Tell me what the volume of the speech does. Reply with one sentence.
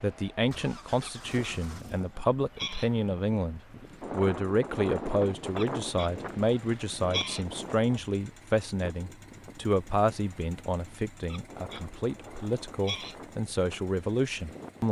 The volume of the speech stays about the same.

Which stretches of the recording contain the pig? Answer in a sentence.
The pig can be heard from 1.0 to 2.9 s, from 5.5 to 7.5 s and from 11.2 to 13.2 s.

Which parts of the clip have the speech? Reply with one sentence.
You can hear the speech from 0.0 to 14.8 s.